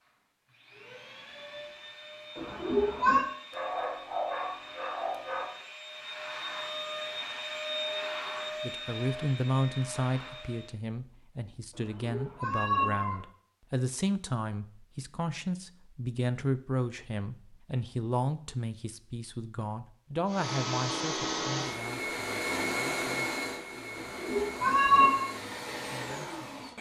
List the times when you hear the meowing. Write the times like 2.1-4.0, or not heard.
2.4-3.2, 11.8-13.2, 23.9-25.2.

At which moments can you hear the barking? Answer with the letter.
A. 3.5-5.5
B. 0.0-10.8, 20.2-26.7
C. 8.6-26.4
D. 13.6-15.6
A.